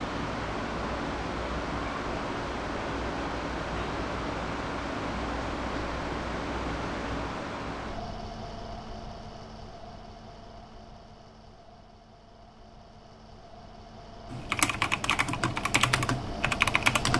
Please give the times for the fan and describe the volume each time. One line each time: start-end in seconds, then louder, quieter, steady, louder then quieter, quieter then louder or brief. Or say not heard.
0.0-17.1 quieter then louder.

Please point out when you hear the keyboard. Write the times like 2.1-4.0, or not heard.
14.3-17.1.